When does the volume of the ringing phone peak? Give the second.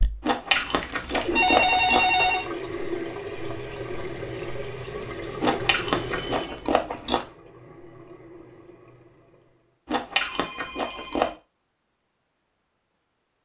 2 s.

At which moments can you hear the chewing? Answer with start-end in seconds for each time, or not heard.
0.2-2.1, 5.4-7.2, 9.8-11.3.